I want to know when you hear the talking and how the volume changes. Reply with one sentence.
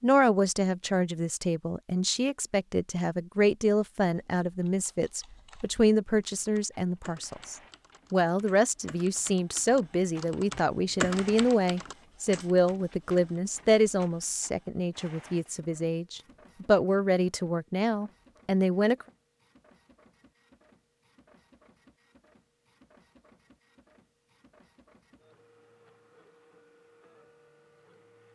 The talking can be heard from 0.0 to 19.1 s, at a steady volume.